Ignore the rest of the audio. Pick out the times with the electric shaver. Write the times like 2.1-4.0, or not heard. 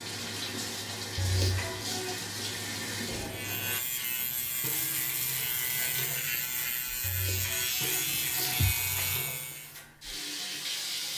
3.2-9.8.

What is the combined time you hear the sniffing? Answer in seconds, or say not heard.
3 s.